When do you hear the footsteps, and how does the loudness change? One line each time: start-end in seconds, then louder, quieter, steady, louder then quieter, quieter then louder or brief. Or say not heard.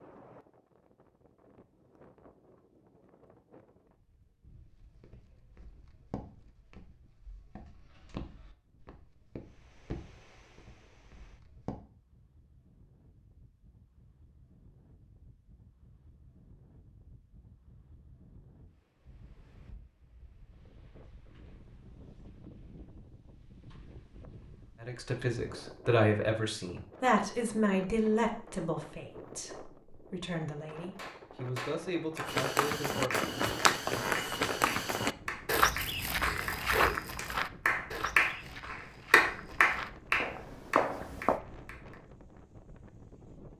4.4-11.8 louder then quieter
32.2-41.4 quieter then louder.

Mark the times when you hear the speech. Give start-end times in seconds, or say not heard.
24.8-33.2.